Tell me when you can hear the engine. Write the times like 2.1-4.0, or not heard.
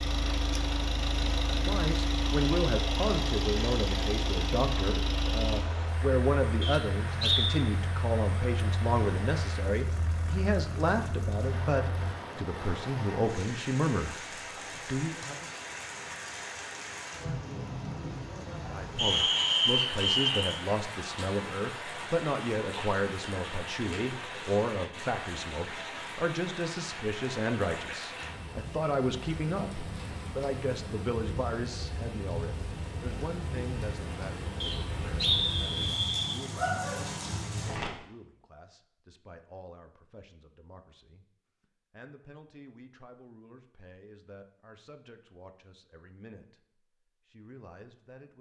0.0-12.2.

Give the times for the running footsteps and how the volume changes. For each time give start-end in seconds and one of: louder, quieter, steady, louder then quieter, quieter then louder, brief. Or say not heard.
not heard.